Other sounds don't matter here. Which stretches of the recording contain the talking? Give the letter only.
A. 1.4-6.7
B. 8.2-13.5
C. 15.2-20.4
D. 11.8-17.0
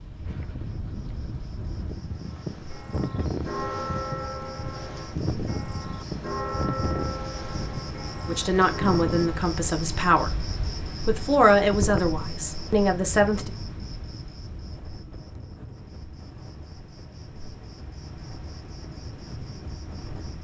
B.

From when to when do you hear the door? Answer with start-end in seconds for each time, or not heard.
not heard.